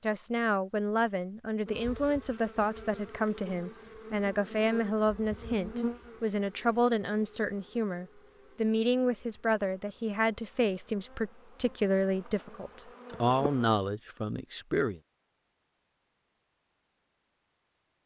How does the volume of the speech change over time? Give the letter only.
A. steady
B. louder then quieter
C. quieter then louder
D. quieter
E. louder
A.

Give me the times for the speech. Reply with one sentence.
You can hear the speech from 0.0 to 15.0 s.